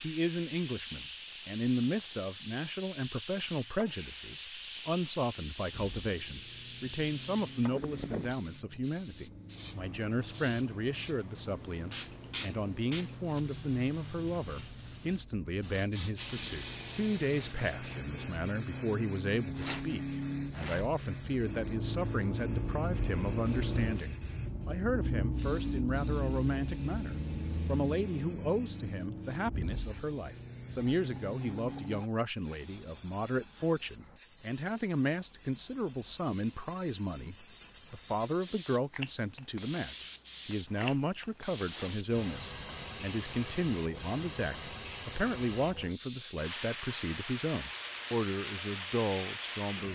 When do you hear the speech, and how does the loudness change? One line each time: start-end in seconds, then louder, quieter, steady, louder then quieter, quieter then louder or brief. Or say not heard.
0.0-49.8 steady.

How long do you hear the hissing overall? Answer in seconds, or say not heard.
50 s.